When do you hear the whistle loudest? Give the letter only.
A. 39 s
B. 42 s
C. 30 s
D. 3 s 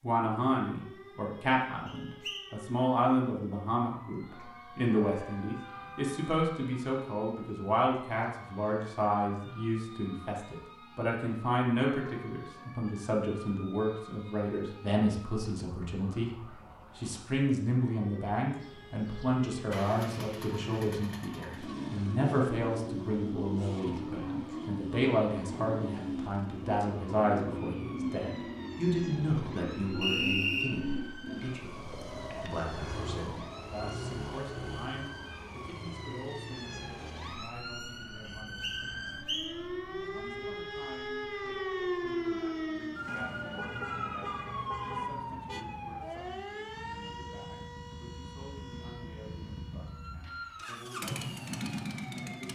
C.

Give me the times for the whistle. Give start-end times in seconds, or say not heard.
1.9-2.5, 30.0-30.6, 38.2-39.5.